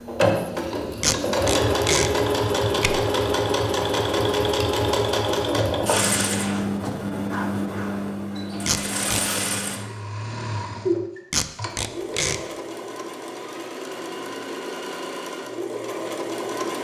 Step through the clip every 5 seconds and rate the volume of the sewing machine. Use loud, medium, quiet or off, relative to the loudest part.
loud, loud, medium, medium.